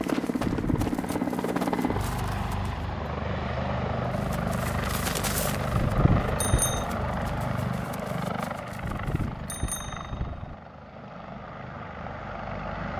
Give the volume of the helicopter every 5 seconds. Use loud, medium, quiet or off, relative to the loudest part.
loud, loud, medium.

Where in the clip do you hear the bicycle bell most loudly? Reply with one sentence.
The loudest moment of the bicycle bell is at 6 seconds.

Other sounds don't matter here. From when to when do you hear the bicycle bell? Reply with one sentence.
The bicycle bell can be heard from 0.5 to 0.9 s, from 5.7 to 6.8 s and from 8.8 to 10.6 s.